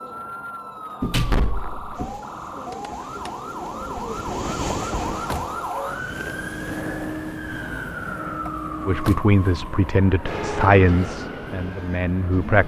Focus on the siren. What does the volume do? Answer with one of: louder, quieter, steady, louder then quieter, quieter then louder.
louder then quieter.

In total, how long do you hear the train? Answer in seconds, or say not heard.
7 s.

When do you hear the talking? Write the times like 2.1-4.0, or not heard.
8.8-12.6.